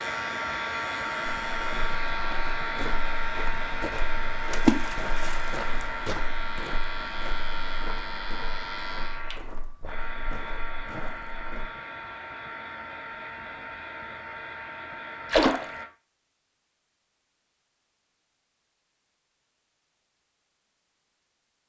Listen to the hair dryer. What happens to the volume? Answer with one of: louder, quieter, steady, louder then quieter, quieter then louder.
quieter.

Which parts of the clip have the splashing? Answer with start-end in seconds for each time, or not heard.
4.5-5.8, 15.3-15.8.